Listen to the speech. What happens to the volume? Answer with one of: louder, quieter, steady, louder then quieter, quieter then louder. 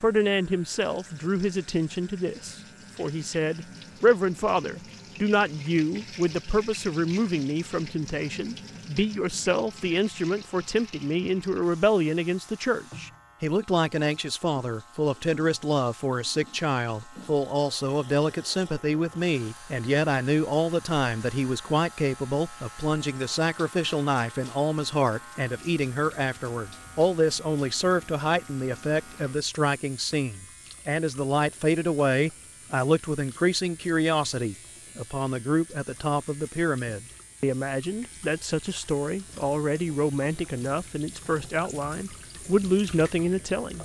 steady.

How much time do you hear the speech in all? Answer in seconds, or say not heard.
44 s.